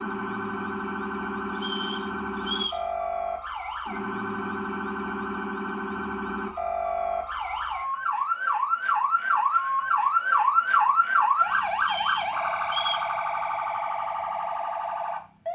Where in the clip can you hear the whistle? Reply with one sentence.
The whistle can be heard from 1.6 to 2.9 s and from 11.8 to 13.1 s.